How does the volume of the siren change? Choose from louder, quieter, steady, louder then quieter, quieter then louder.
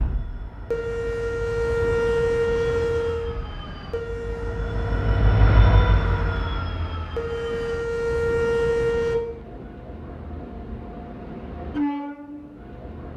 quieter then louder.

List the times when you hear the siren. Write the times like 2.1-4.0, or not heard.
0.0-9.2.